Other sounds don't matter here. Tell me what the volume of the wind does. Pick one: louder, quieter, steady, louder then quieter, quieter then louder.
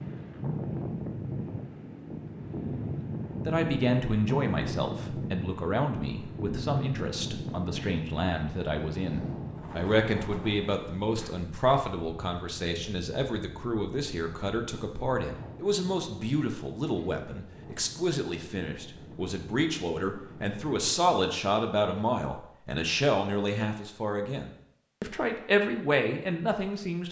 quieter.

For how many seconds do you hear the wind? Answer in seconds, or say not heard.
21 s.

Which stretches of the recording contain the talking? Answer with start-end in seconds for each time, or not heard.
3.5-27.0.